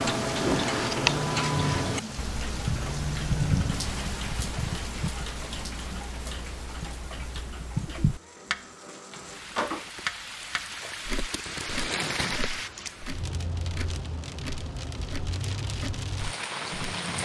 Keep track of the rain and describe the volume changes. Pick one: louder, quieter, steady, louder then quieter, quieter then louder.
quieter then louder.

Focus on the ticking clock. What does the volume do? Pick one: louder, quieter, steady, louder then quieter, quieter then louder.
quieter.